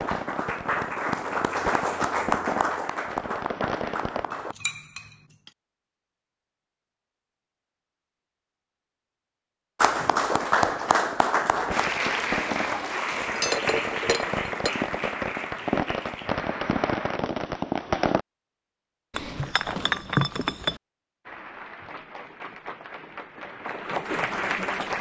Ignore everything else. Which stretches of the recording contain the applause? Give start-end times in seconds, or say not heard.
0.0-4.5, 9.8-17.2, 21.2-24.9.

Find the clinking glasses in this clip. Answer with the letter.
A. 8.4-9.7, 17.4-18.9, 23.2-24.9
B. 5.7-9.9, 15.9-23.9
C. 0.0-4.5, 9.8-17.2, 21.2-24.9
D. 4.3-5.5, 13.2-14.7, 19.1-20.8
D.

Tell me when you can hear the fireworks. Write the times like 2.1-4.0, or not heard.
0.0-4.2, 10.2-18.2.